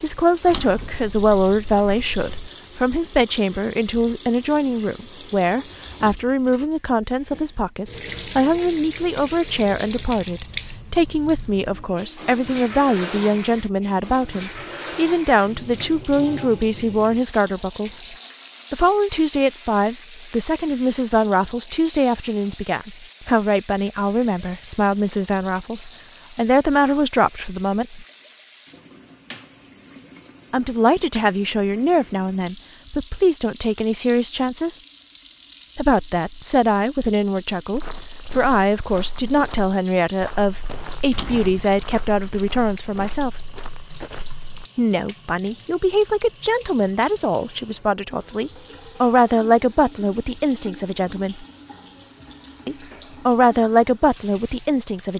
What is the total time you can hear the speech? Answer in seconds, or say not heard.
49 s.